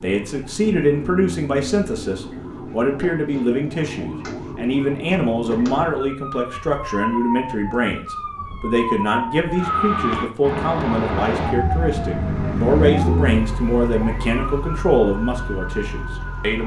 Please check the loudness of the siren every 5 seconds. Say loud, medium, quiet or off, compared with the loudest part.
medium, loud, loud, medium.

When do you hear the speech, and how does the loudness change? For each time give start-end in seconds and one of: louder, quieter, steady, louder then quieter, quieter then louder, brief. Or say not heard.
0.0-16.6 steady.